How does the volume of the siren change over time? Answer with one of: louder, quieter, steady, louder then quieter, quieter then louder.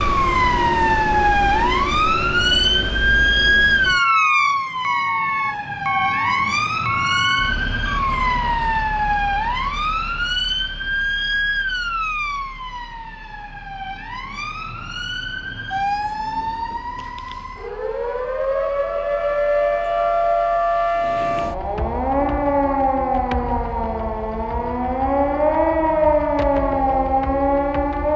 quieter then louder.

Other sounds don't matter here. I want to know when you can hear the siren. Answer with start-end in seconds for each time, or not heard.
0.0-28.1.